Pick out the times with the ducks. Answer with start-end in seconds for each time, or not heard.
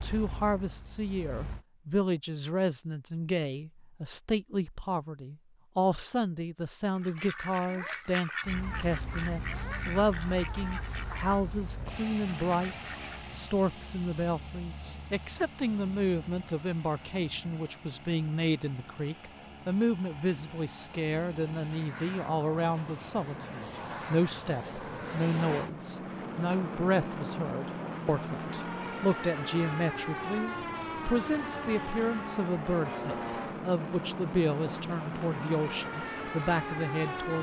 7.0-13.2.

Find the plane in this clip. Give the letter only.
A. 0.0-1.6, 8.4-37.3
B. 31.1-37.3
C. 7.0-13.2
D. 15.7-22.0
A.